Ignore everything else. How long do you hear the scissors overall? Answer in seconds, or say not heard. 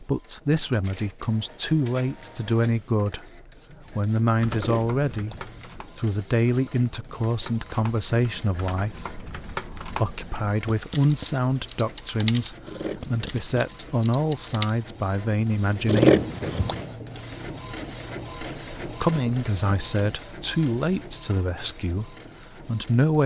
3 s.